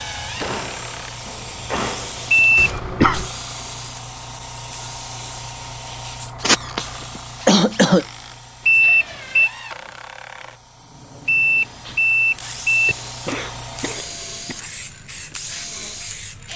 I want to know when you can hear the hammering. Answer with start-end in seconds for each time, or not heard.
0.0-2.5.